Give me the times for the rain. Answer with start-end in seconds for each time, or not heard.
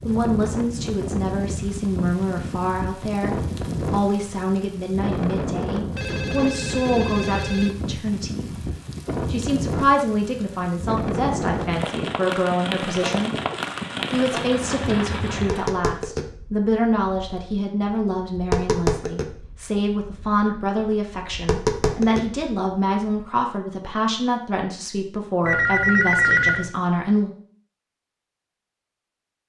0.0-15.8.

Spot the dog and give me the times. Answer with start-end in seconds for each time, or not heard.
not heard.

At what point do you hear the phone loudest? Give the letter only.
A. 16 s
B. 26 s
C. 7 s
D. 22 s
B.